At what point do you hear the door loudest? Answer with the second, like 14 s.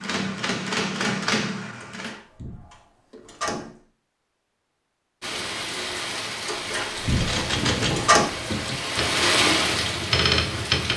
8 s.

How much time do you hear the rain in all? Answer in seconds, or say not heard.
6 s.